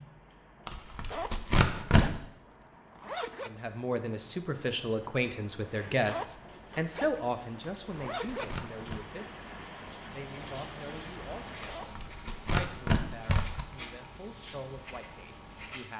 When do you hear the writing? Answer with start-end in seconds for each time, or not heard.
10.3-15.9.